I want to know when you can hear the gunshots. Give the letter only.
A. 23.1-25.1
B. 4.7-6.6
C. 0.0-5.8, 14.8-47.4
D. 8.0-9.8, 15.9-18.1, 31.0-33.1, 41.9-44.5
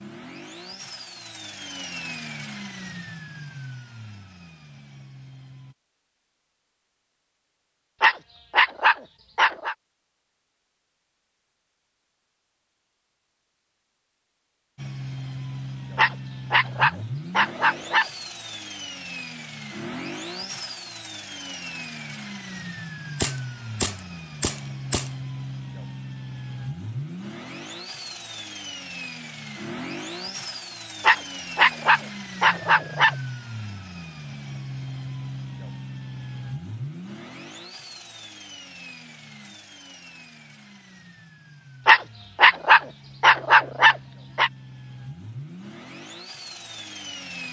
A.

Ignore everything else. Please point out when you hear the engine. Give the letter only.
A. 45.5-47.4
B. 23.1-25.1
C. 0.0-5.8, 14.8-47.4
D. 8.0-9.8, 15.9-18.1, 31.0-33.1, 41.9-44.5
C.